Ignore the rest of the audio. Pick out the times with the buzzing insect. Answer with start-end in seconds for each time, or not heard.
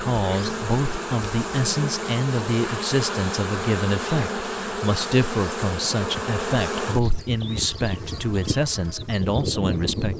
0.0-10.1.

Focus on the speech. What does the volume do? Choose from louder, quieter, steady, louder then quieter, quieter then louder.
steady.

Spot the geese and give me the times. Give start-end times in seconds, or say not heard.
not heard.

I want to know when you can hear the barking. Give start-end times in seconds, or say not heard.
not heard.